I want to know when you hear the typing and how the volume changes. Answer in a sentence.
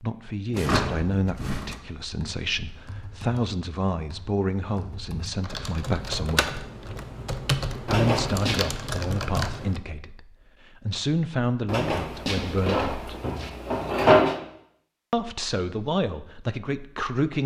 The typing can be heard from 2.0 to 9.8 s, getting louder.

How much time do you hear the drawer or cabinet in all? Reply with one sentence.
The drawer or cabinet can be heard for 5 seconds in total.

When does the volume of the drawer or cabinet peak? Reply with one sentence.
The volume of the drawer or cabinet peaks at 14 seconds.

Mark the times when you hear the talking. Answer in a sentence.
You can hear the talking from 0.0 to 6.6 s, from 7.8 to 13.2 s and from 15.1 to 17.4 s.